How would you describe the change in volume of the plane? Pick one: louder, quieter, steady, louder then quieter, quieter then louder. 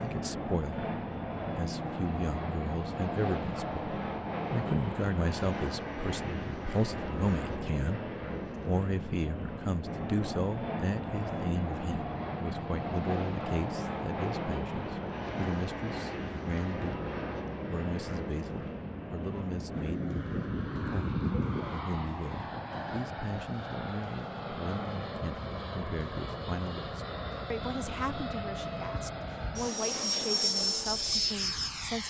steady.